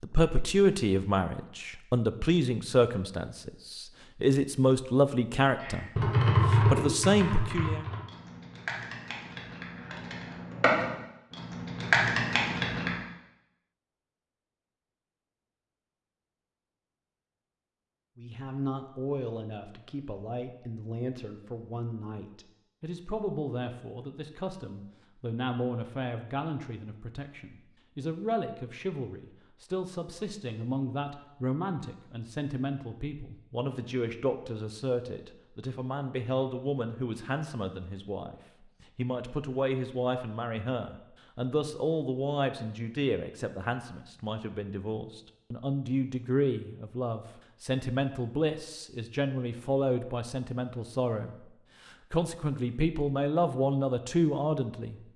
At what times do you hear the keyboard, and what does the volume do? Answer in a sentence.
The keyboard can be heard from 5.6 to 12.9 s, getting quieter then louder.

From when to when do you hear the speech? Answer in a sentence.
You can hear the speech from 0.0 to 7.8 s and from 18.1 to 55.0 s.